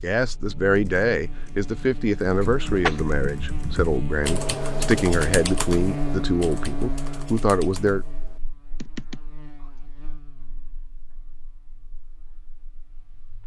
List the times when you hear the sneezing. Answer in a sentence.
You can hear the sneezing from 2.4 to 3.0 s.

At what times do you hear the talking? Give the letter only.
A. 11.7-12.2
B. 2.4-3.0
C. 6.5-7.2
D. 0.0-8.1
D.